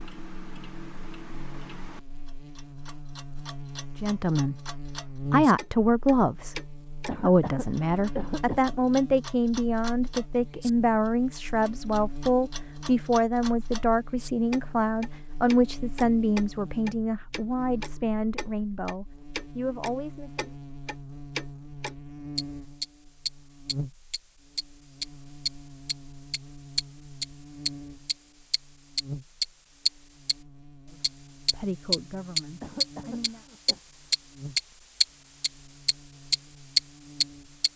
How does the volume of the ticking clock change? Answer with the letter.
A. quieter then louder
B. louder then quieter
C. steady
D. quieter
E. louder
E.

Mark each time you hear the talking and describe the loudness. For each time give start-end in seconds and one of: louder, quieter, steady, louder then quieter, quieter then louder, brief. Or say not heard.
4.0-20.5 quieter
30.9-33.4 brief.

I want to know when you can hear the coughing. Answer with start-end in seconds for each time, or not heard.
7.0-8.6, 32.6-33.8.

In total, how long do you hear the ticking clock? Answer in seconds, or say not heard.
37 s.